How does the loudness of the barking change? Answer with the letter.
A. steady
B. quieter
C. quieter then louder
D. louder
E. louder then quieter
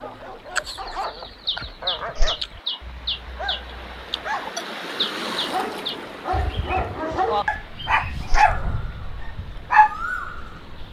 D.